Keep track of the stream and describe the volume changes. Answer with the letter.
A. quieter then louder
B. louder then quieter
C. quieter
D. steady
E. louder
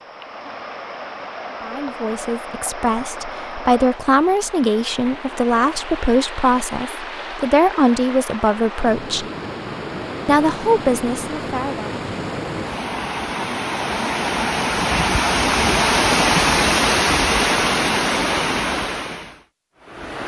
E.